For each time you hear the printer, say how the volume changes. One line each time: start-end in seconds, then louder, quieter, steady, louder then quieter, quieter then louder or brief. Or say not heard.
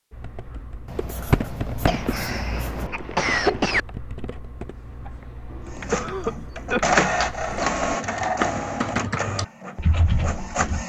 5.8-10.8 quieter.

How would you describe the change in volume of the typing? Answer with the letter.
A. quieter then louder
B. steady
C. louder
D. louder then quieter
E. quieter
A.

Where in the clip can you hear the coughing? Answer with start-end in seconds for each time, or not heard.
1.9-3.8, 5.5-7.0.